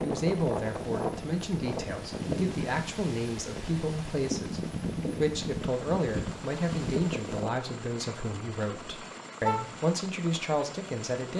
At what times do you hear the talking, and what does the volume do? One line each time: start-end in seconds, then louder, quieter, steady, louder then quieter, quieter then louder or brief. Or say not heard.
0.0-11.3 steady.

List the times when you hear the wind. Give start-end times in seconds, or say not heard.
0.0-7.6.